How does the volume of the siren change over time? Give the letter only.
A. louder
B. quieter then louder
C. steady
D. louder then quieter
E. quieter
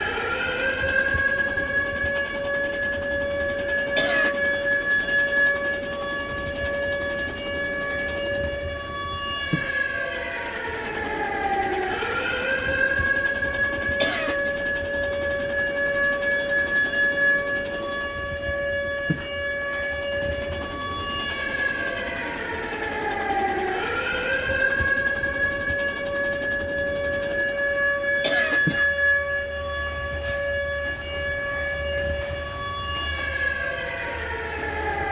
C.